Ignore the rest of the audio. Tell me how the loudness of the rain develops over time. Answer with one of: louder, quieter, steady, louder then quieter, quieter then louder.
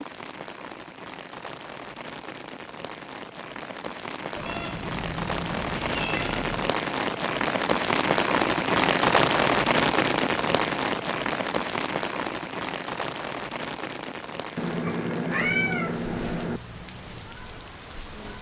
louder then quieter.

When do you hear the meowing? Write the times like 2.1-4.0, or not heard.
4.3-6.7, 14.6-16.6.